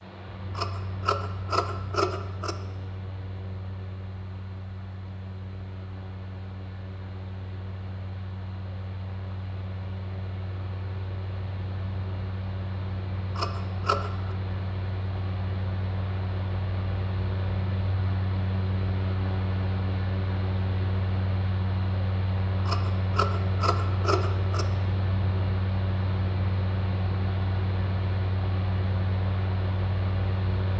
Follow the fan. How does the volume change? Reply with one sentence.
The volume of the fan goes up.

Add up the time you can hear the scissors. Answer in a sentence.
The scissors can be heard for 5 seconds in total.